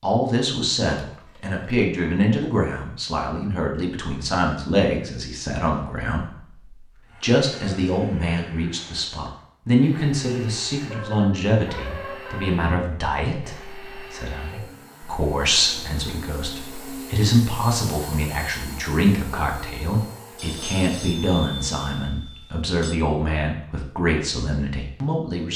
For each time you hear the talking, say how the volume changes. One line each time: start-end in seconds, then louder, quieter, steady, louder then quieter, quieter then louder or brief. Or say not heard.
0.0-25.5 steady.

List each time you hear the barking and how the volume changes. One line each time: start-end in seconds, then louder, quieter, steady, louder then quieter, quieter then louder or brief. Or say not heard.
not heard.